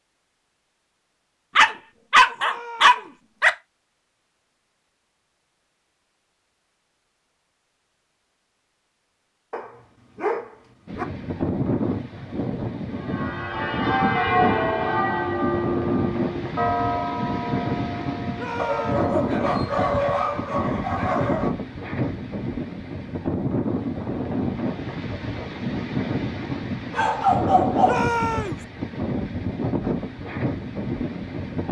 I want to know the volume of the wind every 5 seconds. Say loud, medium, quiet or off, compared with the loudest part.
off, off, loud, loud, loud, loud, loud.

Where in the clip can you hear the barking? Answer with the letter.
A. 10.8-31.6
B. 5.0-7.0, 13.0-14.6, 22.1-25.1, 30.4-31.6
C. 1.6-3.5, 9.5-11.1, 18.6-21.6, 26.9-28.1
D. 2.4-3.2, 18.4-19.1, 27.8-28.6
C.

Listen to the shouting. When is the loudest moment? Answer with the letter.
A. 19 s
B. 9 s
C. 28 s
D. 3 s
C.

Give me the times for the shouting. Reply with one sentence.
The shouting can be heard from 2.4 to 3.2 s, from 18.4 to 19.1 s and from 27.8 to 28.6 s.